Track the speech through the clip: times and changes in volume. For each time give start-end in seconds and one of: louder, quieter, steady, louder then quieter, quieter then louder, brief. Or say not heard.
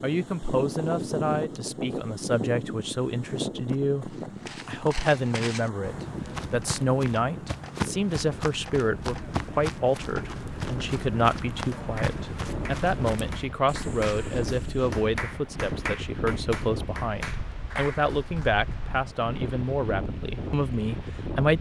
0.0-21.5 steady.